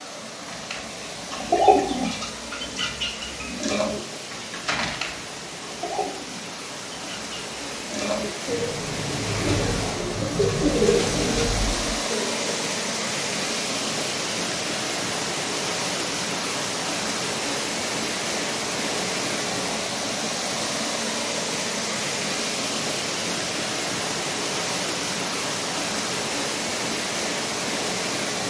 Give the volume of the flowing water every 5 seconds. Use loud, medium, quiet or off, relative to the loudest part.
medium, medium, loud, loud, loud, loud.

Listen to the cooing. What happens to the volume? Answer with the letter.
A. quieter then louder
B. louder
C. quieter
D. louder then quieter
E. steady
A.